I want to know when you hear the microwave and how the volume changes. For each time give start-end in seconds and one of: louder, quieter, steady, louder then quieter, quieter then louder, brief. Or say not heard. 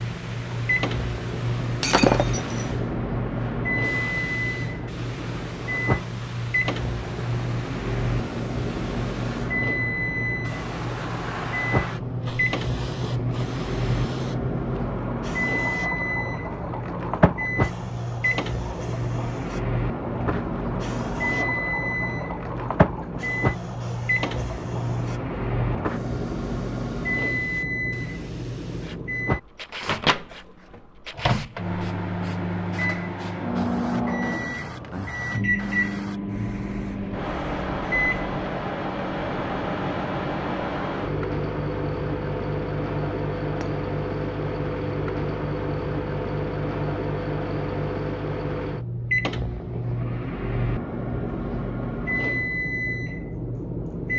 0.0-54.1 steady.